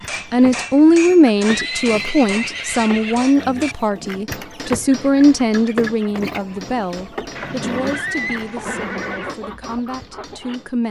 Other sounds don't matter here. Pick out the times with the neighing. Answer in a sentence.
You can hear the neighing from 1.4 to 3.2 s and from 7.3 to 9.3 s.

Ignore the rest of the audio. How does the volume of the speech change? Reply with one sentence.
The volume of the speech goes down.